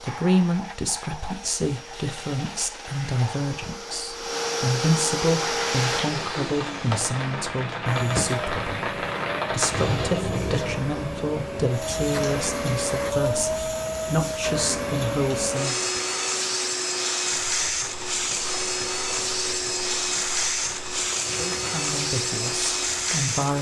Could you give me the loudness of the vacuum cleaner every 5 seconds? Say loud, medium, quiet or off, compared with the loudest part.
medium, loud, loud, loud, loud.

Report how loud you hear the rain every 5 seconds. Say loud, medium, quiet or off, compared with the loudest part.
off, loud, medium, medium, medium.